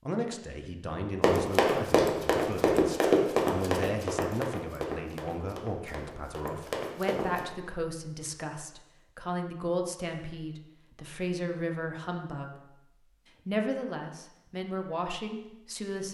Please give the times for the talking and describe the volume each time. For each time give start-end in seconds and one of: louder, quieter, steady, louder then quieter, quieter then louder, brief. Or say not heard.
0.1-12.5 steady
13.4-16.0 brief.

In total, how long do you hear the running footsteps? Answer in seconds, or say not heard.
6 s.